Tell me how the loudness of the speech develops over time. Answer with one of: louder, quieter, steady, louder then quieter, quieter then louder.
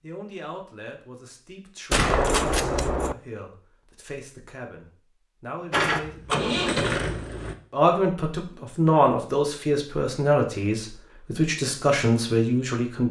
louder.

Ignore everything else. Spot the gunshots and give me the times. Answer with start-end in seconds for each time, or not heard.
1.9-3.1.